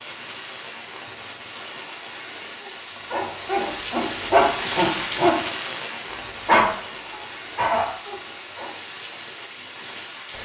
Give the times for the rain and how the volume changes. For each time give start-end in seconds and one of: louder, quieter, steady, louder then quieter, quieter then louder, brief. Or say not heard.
0.0-10.4 louder then quieter.